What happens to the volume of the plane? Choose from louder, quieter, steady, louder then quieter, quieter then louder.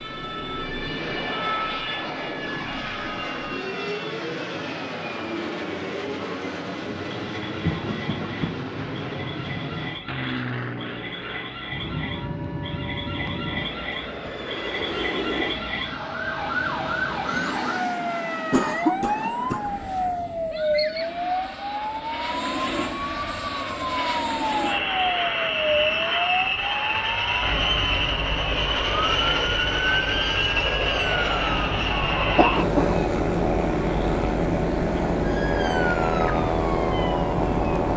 louder.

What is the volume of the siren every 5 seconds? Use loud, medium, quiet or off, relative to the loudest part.
medium, medium, medium, loud, loud, loud, loud, loud.